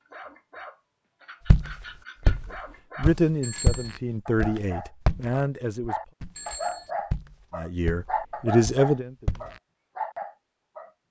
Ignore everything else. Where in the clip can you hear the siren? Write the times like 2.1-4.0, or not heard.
not heard.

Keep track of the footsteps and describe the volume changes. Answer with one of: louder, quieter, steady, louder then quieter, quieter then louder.
quieter.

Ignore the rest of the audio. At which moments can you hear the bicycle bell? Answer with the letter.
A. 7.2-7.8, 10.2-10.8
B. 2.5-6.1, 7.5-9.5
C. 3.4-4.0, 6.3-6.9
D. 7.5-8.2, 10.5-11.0
C.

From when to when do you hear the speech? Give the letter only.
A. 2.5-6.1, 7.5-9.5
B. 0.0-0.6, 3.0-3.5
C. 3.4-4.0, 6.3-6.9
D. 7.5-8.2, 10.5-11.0
A.